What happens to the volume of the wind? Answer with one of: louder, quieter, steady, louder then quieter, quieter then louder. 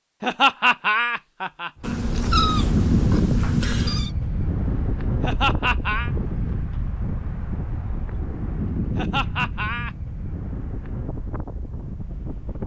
quieter.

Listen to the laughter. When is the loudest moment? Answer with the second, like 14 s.
1 s.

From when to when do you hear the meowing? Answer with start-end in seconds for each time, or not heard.
1.8-4.1.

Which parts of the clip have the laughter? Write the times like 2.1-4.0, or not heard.
0.2-1.9, 5.2-6.1, 8.9-9.9.